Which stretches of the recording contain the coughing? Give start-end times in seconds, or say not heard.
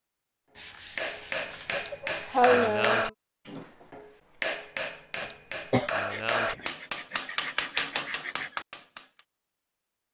1.9-3.1, 5.2-5.9.